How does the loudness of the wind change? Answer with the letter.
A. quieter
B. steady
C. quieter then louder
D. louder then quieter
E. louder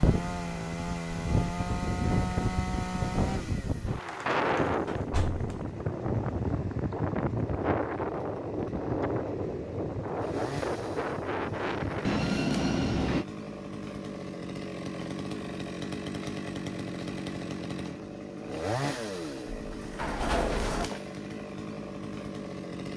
B.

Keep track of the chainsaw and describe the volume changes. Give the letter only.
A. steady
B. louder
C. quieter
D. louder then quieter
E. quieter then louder
E.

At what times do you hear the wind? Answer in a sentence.
You can hear the wind from 0.0 to 12.3 s.